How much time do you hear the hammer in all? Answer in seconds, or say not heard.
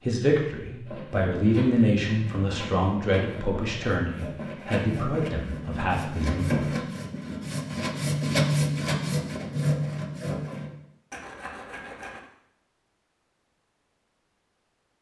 not heard.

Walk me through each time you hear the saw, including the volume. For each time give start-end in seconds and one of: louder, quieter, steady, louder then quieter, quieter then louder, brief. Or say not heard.
0.8-12.2 louder then quieter.